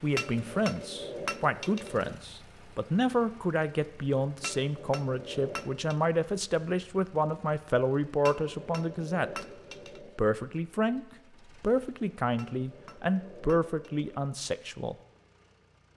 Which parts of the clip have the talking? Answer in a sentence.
You can hear the talking from 0.0 to 9.4 s and from 10.2 to 14.9 s.